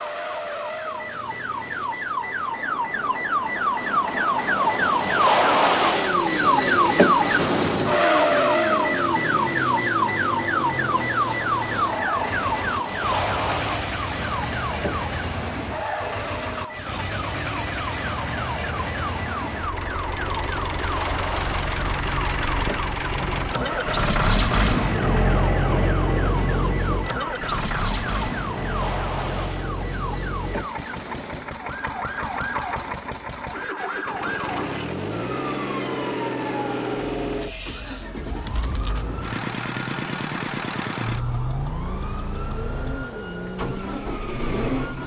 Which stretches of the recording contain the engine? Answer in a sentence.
You can hear the engine from 5.5 to 45.0 s.